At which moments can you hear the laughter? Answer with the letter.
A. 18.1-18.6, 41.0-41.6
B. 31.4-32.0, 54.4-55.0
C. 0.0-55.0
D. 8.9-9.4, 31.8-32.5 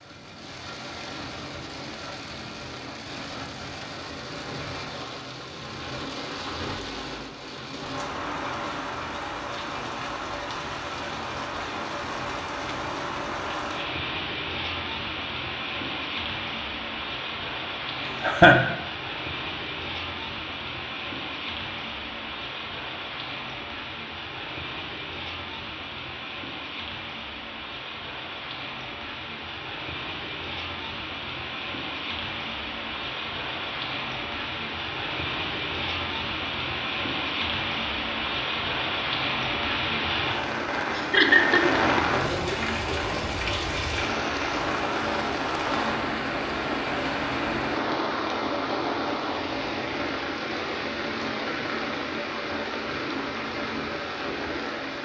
A.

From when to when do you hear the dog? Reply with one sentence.
The dog can't be heard in this clip.